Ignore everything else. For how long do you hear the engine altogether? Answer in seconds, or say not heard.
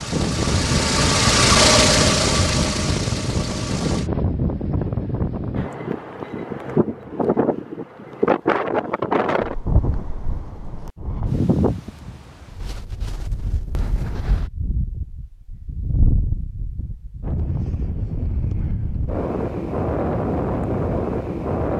4 s.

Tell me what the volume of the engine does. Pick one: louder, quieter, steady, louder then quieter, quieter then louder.
louder then quieter.